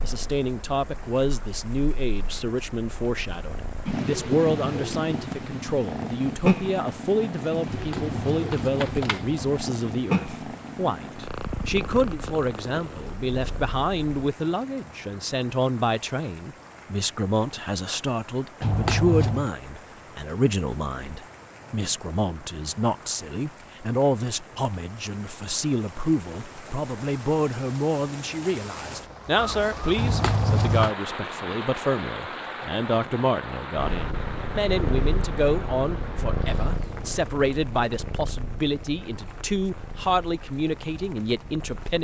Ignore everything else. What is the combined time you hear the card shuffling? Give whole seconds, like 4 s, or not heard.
4 s.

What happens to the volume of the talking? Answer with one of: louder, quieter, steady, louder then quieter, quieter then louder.
steady.